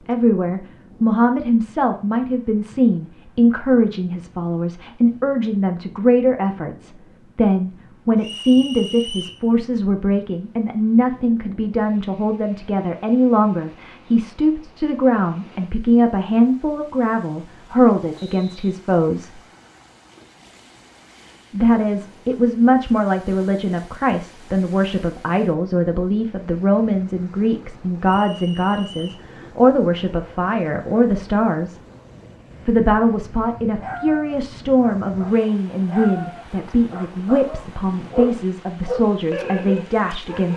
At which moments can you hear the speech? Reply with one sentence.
The speech can be heard from 0.1 to 19.4 s, from 21.5 to 31.8 s and from 32.6 to 40.5 s.